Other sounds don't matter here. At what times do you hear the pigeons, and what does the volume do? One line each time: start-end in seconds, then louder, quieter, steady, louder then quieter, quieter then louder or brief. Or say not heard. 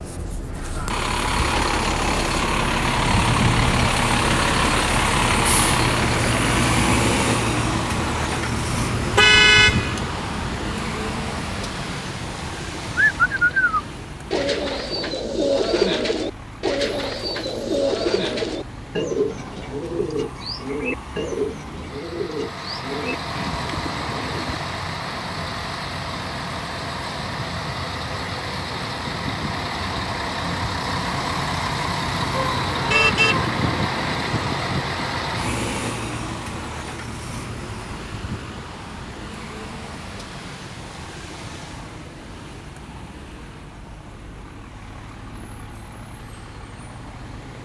12.9-24.6 quieter.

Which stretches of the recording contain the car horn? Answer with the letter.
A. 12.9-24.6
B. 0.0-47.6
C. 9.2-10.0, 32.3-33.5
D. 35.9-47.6
C.